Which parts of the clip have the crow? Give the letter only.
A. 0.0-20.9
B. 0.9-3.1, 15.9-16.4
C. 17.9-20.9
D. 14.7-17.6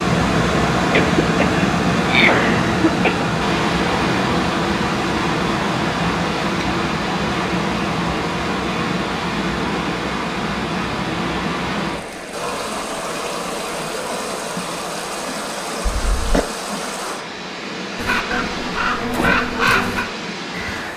C.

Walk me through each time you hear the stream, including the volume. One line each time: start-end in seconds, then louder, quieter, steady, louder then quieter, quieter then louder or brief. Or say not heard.
0.0-20.9 quieter.